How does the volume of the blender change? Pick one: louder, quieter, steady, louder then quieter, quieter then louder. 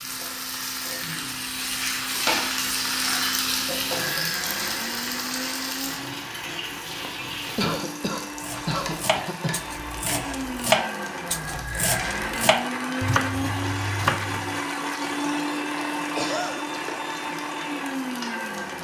louder.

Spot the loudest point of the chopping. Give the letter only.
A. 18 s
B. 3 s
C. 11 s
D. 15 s
C.